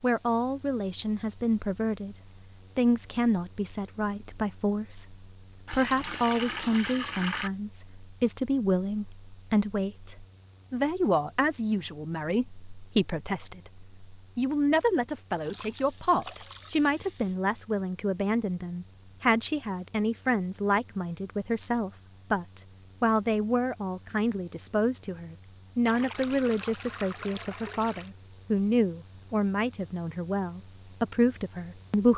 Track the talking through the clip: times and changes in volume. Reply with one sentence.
You can hear the talking from 0.0 to 32.1 s, at a steady volume.